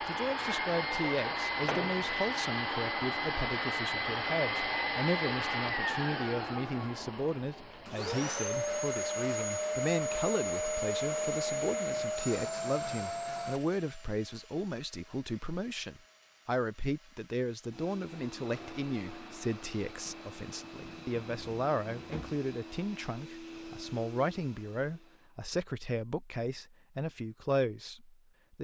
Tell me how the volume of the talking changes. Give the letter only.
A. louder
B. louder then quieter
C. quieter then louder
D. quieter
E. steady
E.